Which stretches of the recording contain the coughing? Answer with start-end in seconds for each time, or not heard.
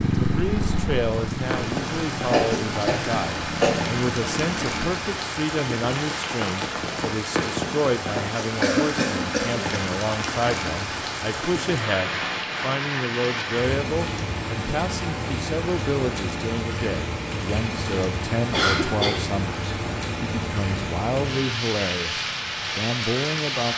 2.3-3.8, 8.6-9.8, 18.5-19.2.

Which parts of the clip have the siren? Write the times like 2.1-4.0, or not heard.
not heard.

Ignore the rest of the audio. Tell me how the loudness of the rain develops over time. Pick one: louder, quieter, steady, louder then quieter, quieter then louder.
steady.